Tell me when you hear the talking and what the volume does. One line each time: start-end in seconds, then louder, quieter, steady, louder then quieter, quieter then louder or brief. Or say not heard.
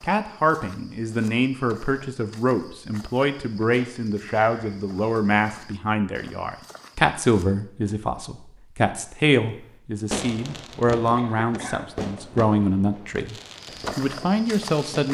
0.0-13.3 steady
13.9-15.1 brief.